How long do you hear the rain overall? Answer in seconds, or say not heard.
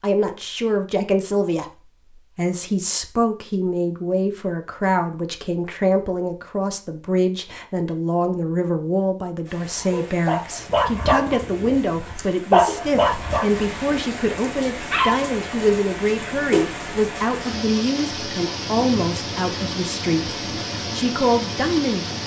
13 s.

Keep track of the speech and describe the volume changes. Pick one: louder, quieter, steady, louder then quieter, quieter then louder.
steady.